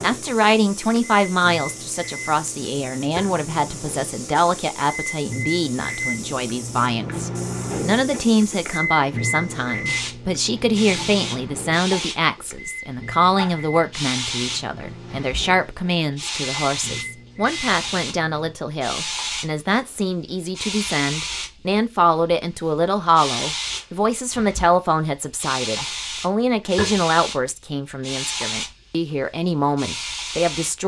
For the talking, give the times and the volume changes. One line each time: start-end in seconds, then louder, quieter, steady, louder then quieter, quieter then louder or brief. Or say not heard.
0.0-30.8 steady.